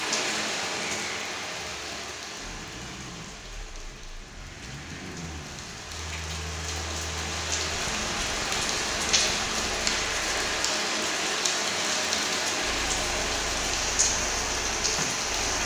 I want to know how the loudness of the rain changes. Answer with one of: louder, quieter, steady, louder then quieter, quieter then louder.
quieter then louder.